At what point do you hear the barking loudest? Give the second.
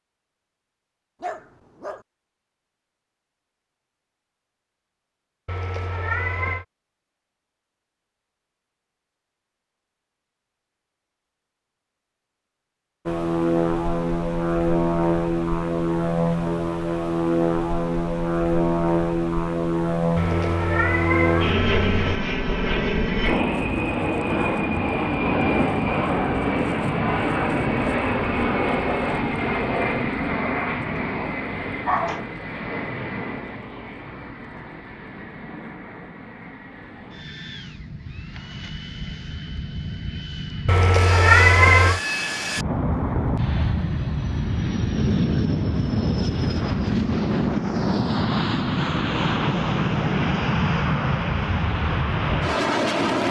32 s.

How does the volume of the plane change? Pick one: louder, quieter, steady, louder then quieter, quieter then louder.
quieter then louder.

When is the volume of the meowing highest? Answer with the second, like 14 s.
41 s.